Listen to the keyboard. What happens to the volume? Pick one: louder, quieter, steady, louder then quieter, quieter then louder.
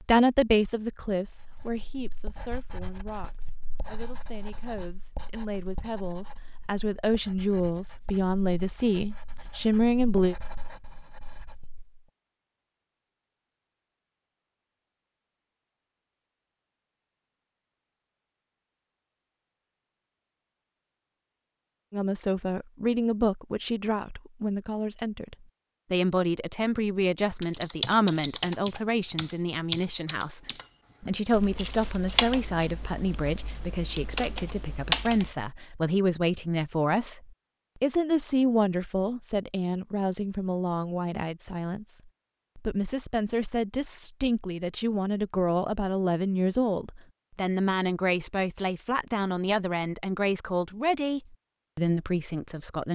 quieter then louder.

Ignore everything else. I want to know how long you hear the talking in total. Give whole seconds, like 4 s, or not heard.
41 s.